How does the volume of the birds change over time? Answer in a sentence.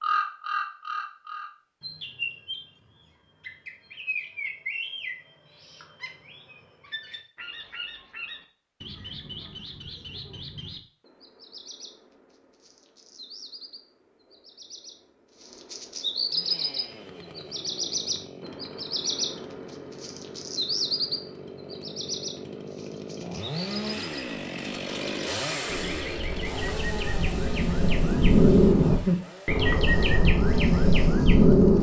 The loudness of the birds goes down, then up.